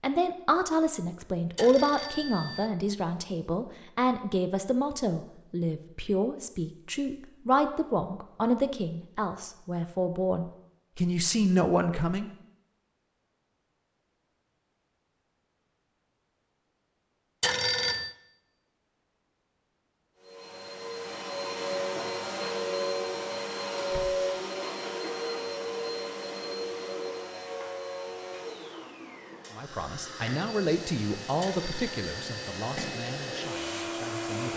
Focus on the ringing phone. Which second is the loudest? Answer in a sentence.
The loudest moment of the ringing phone is at 18 seconds.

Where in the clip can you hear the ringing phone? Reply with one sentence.
You can hear the ringing phone from 1.6 to 2.7 s, from 17.4 to 18.1 s and from 31.4 to 32.5 s.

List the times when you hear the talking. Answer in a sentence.
You can hear the talking from 0.0 to 12.3 s and from 29.5 to 34.5 s.